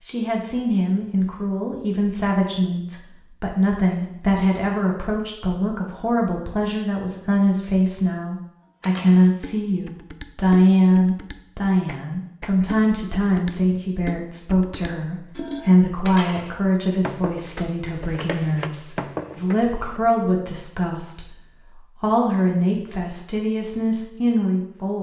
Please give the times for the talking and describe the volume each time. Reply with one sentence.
You can hear the talking from 0.1 to 24.9 s, at a steady volume.